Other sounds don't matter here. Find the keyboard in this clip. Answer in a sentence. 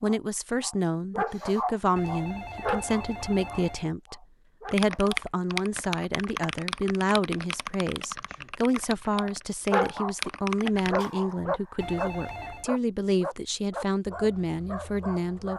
The keyboard can be heard from 4.7 to 11.1 s.